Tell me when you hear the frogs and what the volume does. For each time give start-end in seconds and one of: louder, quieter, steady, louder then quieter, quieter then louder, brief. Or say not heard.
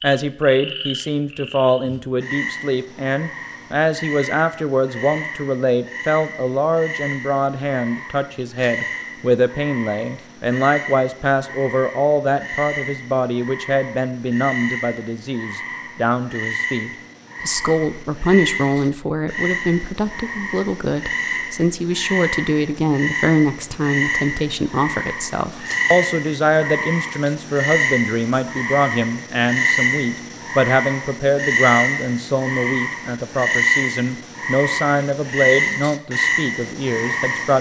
0.0-37.5 louder.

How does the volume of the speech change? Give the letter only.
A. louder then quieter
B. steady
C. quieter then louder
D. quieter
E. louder
B.